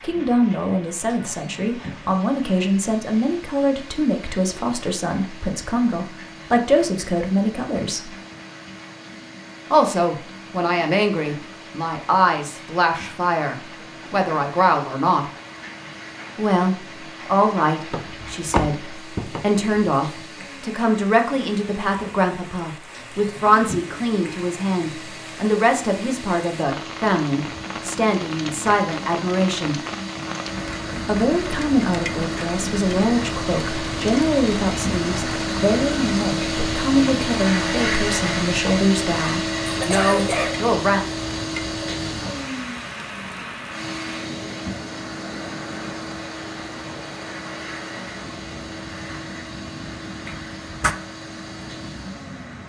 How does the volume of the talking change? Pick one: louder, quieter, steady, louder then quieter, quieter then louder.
steady.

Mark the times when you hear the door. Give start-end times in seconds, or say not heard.
17.9-19.6, 50.2-51.0.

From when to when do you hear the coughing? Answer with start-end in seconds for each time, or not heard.
39.7-40.6.